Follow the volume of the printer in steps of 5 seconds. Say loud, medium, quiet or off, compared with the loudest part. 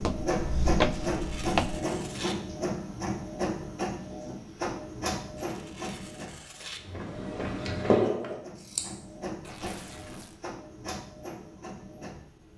loud, medium, medium.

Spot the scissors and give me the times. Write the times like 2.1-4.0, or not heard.
7.9-8.8.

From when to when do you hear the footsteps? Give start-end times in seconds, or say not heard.
0.0-1.8.